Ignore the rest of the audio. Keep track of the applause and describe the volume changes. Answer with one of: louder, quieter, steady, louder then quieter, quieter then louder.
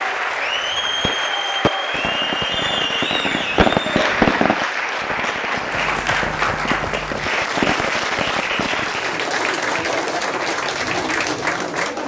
steady.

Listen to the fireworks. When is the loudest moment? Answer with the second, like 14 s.
4 s.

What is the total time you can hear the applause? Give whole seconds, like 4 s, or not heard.
12 s.